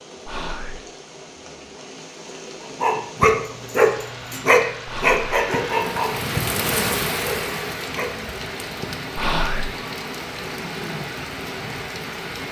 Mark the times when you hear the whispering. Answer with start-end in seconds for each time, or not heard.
0.2-0.8, 4.8-5.2, 9.2-9.8.